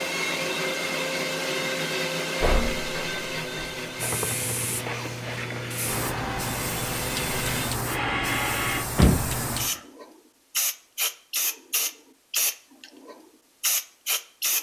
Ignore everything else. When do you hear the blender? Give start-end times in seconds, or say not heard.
0.0-8.9.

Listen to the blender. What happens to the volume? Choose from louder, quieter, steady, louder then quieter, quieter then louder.
quieter then louder.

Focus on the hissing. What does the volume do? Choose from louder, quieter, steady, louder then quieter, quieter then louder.
steady.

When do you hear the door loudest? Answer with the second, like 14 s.
9 s.